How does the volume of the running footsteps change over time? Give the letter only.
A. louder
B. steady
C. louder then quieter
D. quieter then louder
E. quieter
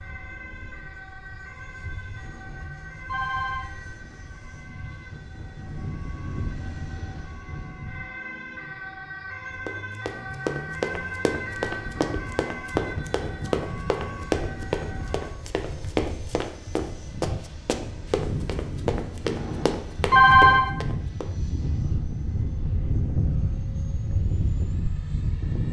B.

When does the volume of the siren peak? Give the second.
11 s.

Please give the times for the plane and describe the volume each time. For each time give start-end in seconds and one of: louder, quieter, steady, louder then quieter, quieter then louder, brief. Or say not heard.
0.0-8.1 louder
13.7-25.6 louder.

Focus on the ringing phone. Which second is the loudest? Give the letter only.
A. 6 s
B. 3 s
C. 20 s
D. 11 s
C.